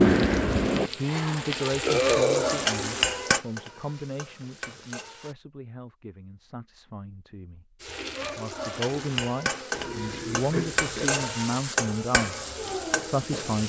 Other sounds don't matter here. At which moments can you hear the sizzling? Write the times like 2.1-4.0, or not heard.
0.0-5.3, 7.8-13.6.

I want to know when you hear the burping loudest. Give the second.
2 s.